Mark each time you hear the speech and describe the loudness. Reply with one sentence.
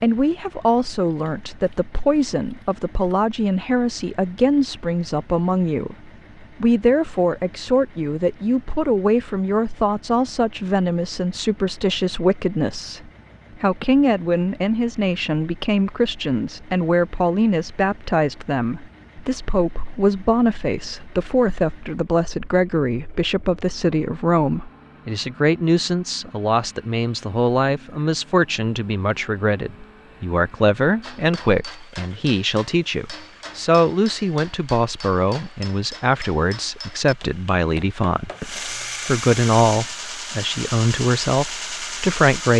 You can hear the speech from 0.0 to 42.5 s, at a steady volume.